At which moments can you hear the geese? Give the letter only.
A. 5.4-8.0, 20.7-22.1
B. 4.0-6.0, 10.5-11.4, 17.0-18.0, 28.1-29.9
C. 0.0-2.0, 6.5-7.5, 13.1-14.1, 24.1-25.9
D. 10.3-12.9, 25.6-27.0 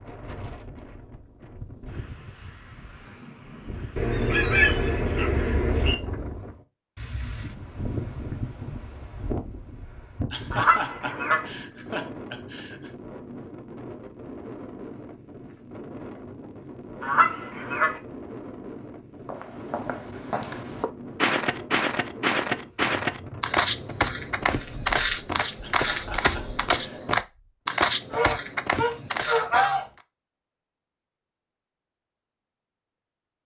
B.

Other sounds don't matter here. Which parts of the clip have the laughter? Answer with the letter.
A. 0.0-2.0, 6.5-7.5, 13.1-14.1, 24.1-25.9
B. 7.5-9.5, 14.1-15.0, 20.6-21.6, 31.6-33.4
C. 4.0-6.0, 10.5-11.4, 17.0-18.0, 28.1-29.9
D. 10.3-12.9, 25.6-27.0
D.